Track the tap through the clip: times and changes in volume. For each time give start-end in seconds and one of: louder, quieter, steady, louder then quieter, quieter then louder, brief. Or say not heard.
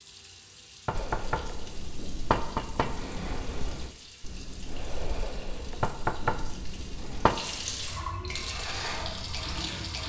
0.0-10.0 louder.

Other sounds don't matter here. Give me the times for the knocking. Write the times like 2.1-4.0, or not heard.
0.8-3.1, 5.8-7.4.